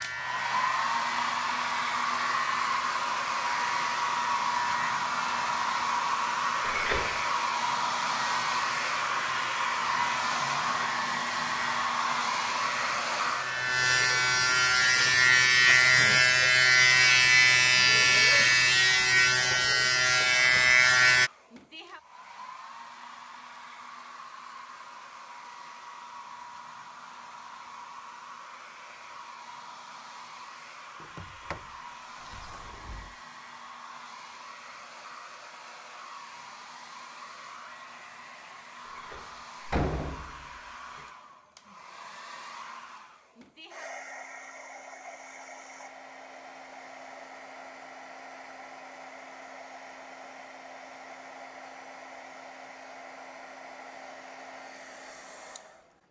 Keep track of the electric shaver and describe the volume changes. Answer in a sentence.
The volume of the electric shaver goes up.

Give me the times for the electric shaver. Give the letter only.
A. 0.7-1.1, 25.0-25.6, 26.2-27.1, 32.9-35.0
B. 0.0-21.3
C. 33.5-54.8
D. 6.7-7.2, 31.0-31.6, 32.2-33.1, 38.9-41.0
B.